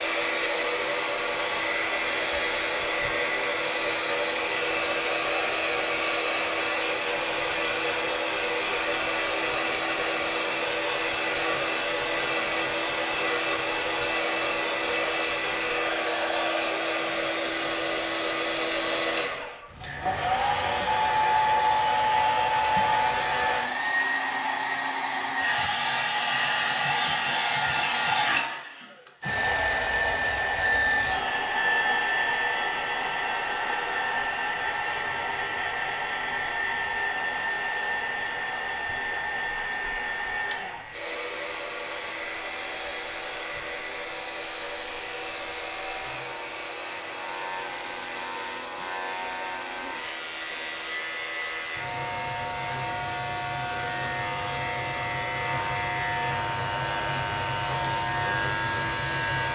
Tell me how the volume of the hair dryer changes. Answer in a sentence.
The volume of the hair dryer goes down.